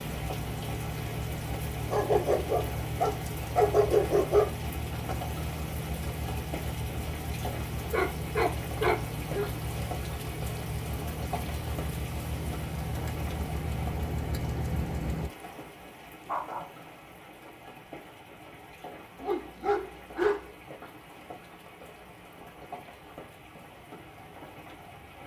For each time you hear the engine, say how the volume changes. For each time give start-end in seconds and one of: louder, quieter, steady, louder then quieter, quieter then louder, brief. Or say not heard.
0.0-15.3 steady.